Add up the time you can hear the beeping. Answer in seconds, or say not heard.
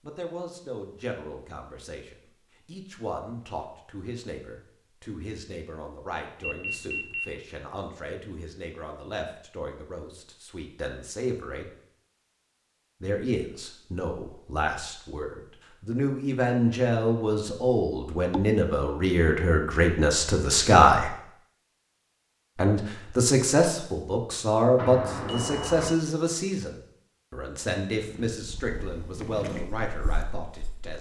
2 s.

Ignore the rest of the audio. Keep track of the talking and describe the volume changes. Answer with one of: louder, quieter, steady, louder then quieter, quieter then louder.
louder then quieter.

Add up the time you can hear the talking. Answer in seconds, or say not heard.
28 s.